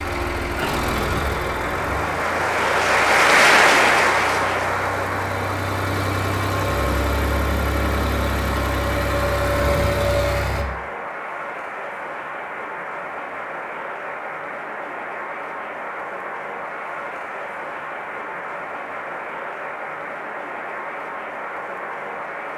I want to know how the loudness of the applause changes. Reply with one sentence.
The volume of the applause goes down.